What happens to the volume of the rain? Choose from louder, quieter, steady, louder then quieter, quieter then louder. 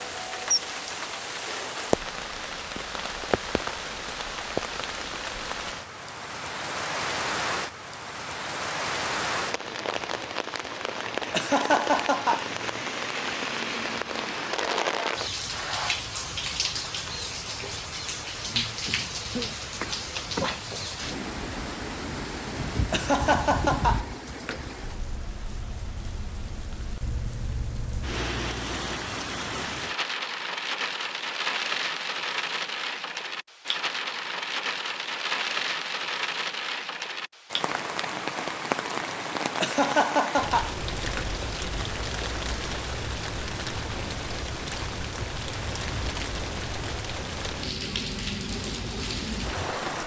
steady.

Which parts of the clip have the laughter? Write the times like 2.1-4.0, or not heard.
11.3-12.4, 22.9-24.6, 39.6-41.2.